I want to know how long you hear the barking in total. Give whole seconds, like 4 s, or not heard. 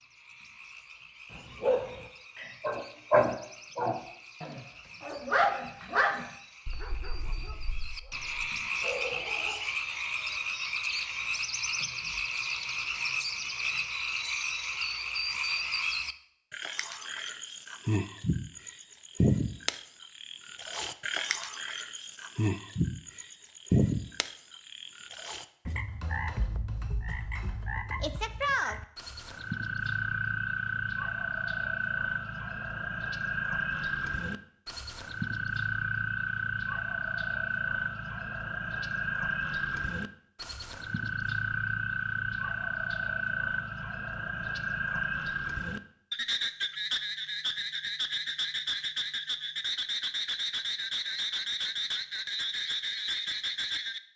8 s.